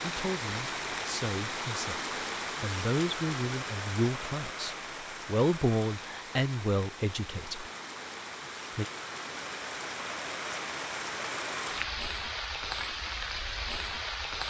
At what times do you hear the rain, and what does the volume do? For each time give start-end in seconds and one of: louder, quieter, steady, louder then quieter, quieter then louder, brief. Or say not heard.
0.0-14.4 quieter then louder.